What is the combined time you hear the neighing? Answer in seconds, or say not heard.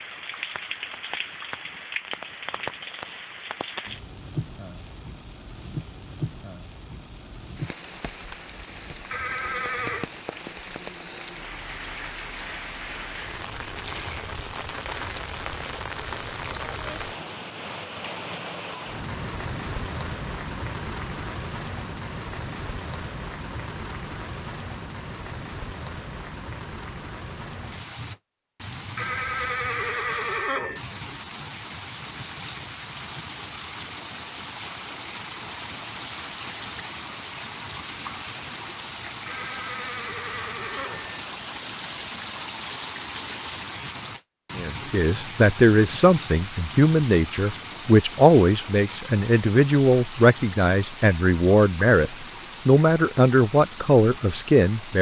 5 s.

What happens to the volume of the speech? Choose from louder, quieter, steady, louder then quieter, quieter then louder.
steady.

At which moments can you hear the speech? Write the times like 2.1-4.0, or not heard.
44.5-54.9.